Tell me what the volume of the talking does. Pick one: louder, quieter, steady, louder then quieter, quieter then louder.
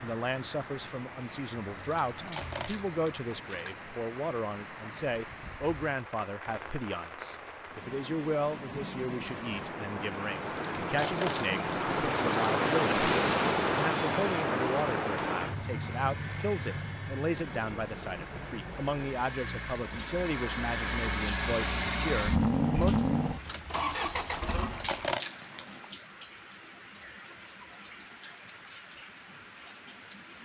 steady.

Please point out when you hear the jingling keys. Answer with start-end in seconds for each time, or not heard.
1.8-3.8, 10.4-12.3, 24.3-25.6.